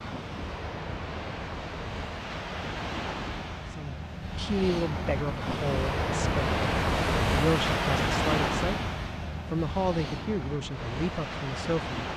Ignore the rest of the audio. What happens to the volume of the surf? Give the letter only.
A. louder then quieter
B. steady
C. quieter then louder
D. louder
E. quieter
A.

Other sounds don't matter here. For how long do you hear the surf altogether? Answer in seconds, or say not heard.
12 s.